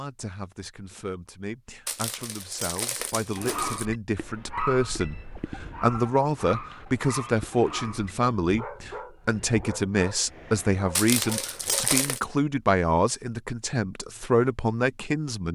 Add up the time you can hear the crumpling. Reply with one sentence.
You can hear the crumpling for 3 seconds altogether.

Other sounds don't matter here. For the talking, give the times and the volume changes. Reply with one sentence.
You can hear the talking from 0.0 to 15.4 s, getting louder.